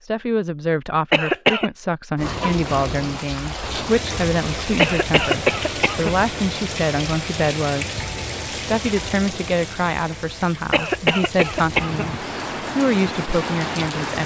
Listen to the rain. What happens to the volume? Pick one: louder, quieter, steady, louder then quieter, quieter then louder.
quieter then louder.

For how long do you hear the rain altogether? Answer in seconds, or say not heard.
12 s.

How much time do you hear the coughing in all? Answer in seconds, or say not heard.
3 s.